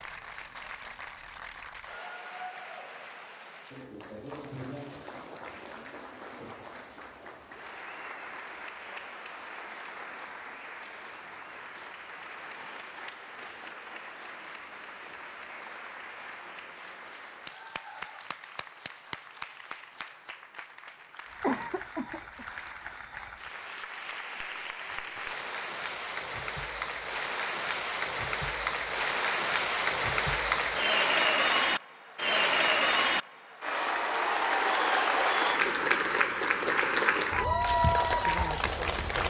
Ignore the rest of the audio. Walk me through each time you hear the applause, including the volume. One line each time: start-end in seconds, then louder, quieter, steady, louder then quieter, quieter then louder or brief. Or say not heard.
0.0-39.2 louder.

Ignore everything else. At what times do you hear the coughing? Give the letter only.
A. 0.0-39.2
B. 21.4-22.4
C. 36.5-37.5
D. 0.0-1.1
B.